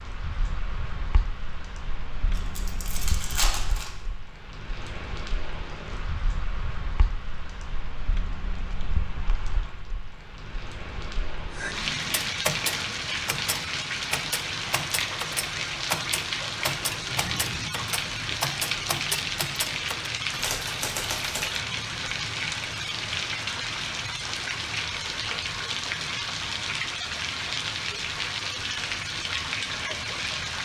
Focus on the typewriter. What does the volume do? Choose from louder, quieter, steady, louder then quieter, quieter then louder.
steady.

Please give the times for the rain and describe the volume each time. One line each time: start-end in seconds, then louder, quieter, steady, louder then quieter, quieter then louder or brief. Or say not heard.
0.0-30.6 louder.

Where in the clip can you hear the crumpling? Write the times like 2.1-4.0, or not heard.
2.4-3.9.